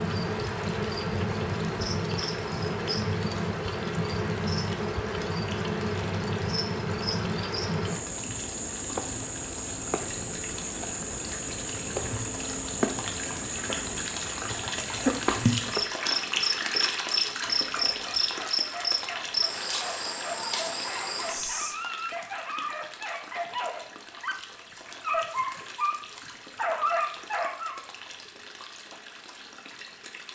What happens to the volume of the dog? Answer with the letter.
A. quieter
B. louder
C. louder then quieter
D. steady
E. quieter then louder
B.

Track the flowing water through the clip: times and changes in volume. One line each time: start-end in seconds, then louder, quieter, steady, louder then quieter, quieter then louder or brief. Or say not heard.
0.1-30.2 louder then quieter.